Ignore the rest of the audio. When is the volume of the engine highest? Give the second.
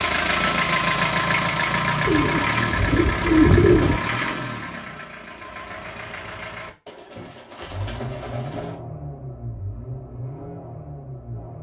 1 s.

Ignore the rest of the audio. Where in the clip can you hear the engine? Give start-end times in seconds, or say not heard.
0.0-6.7, 7.6-11.5.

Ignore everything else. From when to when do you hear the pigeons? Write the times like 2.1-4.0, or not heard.
2.0-4.0, 6.8-8.8.